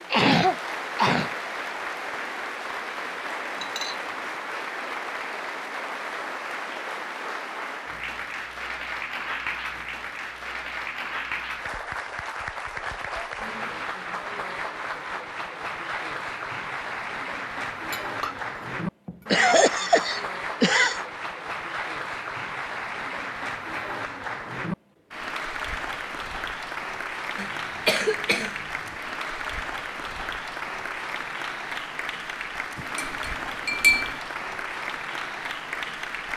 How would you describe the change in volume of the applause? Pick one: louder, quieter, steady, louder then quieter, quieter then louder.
steady.